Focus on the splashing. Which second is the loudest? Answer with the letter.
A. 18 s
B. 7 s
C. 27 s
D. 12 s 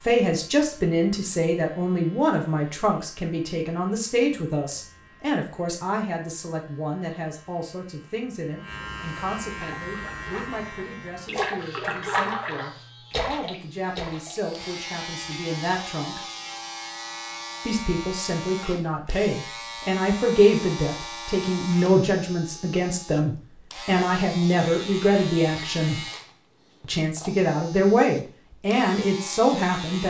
D.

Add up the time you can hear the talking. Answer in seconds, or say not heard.
28 s.